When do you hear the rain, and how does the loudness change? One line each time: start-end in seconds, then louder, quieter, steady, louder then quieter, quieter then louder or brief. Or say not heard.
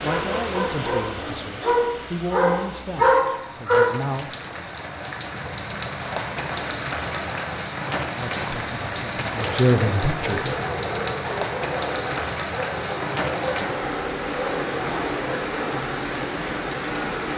0.0-17.3 louder.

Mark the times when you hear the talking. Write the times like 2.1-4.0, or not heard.
0.0-4.3, 8.1-10.6.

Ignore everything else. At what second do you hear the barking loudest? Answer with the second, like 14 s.
3 s.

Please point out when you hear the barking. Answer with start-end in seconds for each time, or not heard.
0.0-3.9, 9.3-15.8.